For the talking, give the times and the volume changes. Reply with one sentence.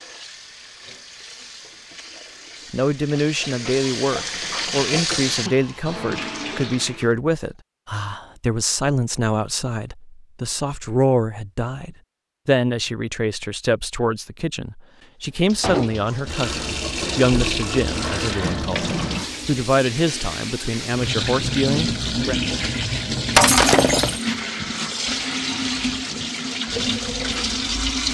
You can hear the talking from 2.7 to 22.4 s, at a steady volume.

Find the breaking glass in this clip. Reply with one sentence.
You can hear the breaking glass from 23.4 to 24.2 s.